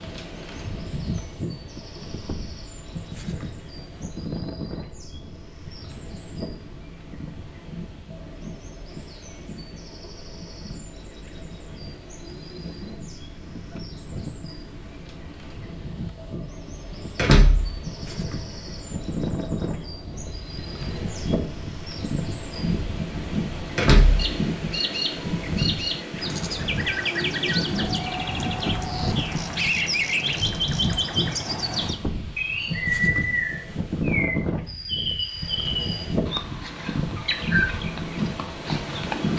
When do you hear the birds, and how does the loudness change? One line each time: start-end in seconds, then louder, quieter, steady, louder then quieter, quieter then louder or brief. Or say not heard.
0.1-39.3 louder.